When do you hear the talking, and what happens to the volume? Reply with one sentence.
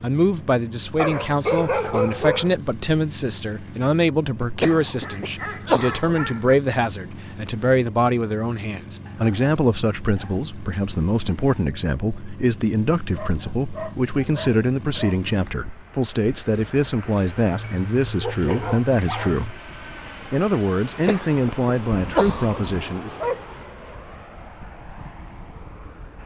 The talking can be heard from 0.0 to 19.6 s, at a steady volume; and briefly from 20.3 to 23.1 s.